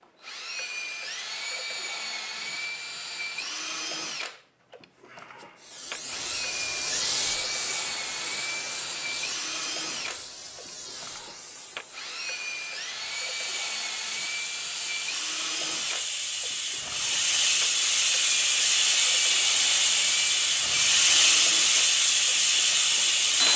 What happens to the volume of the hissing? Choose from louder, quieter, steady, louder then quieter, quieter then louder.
quieter then louder.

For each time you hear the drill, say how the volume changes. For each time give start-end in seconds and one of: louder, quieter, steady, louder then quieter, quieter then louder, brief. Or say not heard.
0.0-23.5 steady.